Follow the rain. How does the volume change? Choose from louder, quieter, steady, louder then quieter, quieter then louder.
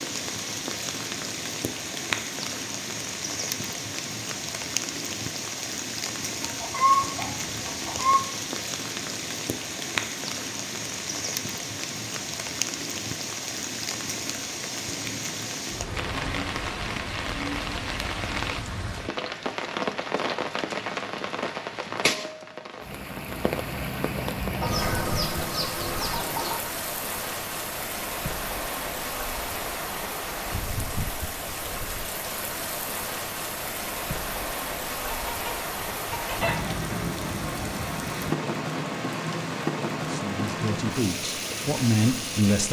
steady.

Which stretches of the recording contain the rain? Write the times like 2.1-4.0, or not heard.
0.0-42.6.